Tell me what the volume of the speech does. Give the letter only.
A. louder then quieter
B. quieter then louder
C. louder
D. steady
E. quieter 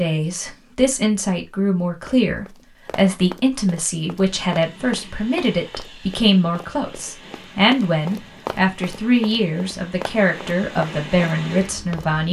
D.